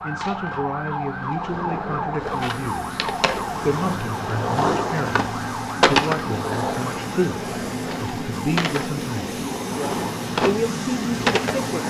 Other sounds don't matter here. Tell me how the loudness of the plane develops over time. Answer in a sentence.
The volume of the plane goes up.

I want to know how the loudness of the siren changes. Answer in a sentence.
The volume of the siren goes down.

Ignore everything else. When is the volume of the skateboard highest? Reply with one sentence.
The volume of the skateboard peaks at 6 seconds.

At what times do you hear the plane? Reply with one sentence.
You can hear the plane from 2.4 to 11.8 s.